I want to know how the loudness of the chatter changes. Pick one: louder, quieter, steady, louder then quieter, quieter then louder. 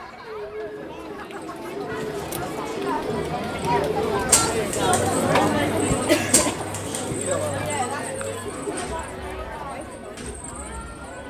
louder then quieter.